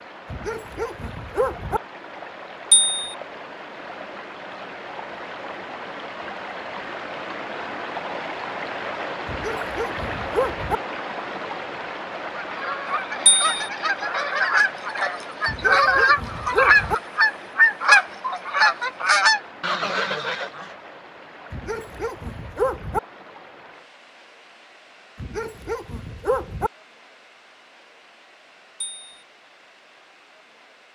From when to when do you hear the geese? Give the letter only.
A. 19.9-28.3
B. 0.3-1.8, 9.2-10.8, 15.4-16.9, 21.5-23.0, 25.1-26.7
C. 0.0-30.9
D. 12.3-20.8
D.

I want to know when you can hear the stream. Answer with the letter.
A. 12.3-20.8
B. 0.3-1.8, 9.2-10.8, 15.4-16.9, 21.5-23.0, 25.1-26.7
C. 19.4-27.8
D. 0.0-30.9
D.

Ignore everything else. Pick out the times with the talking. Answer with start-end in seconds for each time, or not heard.
not heard.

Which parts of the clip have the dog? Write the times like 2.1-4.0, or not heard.
0.3-1.8, 9.2-10.8, 15.4-16.9, 21.5-23.0, 25.1-26.7.